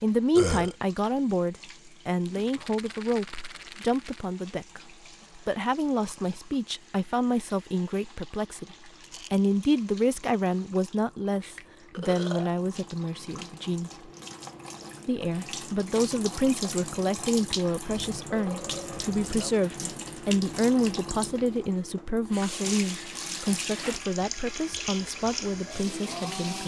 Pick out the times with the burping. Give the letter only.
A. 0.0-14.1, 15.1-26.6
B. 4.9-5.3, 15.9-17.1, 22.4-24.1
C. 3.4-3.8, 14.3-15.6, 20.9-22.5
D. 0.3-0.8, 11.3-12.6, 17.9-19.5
D.